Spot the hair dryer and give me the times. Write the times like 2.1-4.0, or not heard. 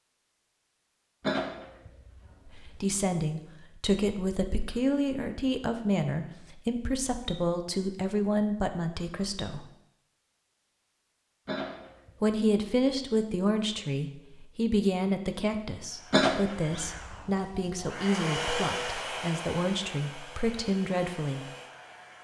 15.8-22.1.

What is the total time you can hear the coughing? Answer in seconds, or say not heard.
5 s.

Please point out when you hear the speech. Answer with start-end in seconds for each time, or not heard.
2.5-9.7, 12.2-21.4.